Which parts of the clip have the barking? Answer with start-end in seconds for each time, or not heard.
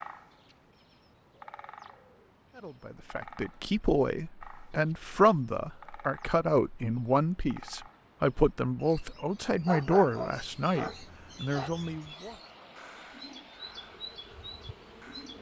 9.7-11.9.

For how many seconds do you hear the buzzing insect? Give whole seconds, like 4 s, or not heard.
2 s.